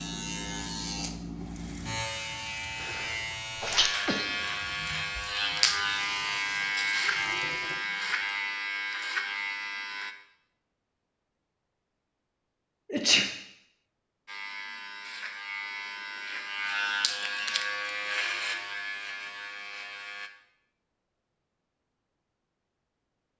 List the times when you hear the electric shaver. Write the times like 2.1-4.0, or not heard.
0.0-10.2, 14.2-20.3.